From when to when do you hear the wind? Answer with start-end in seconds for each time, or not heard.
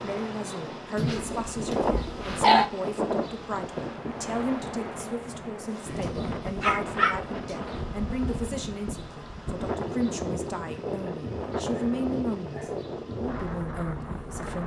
0.0-14.6.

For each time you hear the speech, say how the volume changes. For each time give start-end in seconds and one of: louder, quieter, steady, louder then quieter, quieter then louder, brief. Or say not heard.
0.0-14.6 steady.